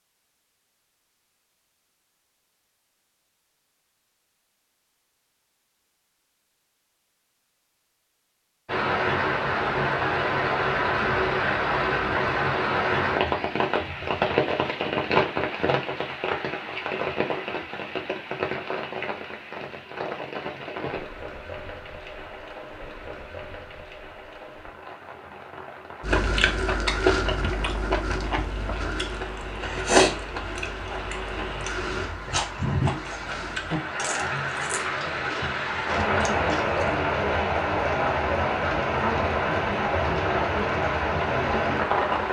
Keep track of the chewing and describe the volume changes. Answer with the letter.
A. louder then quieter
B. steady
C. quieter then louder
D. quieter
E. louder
D.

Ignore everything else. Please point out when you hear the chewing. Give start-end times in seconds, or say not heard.
26.0-37.0.